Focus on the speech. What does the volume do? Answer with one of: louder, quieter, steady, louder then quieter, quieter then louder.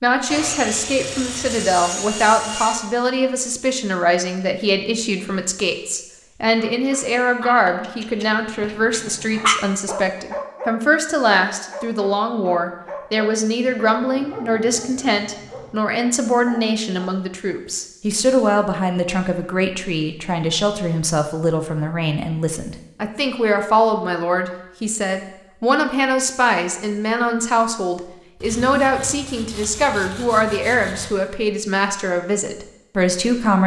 steady.